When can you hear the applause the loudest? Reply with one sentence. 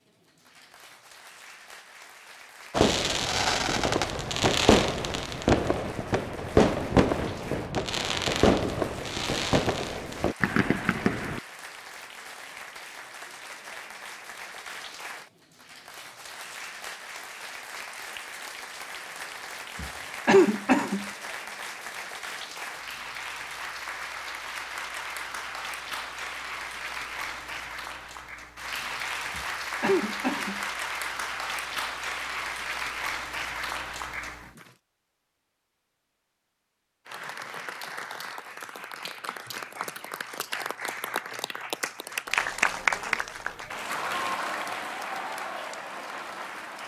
The loudest moment of the applause is at 43 seconds.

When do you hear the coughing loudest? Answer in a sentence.
The loudest moment of the coughing is at 20 seconds.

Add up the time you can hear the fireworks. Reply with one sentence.
You can hear the fireworks for 9 seconds altogether.